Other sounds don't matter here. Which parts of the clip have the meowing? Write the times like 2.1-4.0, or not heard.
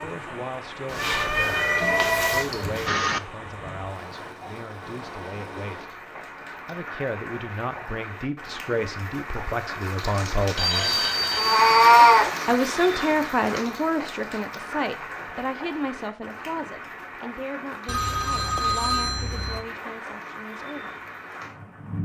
0.8-2.9, 11.3-12.3.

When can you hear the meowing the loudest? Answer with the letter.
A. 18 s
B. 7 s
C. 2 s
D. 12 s
D.